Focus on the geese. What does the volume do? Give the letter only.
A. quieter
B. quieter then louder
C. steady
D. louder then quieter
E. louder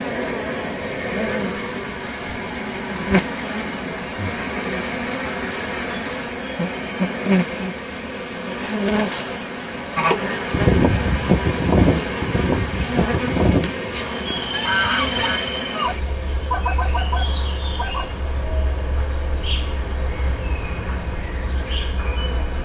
A.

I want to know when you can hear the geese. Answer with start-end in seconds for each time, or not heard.
9.9-18.1.